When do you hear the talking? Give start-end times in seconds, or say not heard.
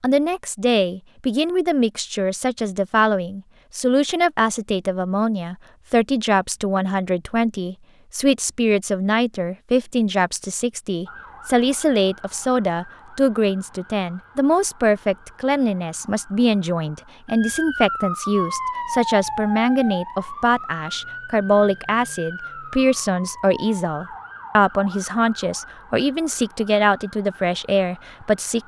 0.0-28.6.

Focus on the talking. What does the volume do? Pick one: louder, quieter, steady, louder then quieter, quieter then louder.
steady.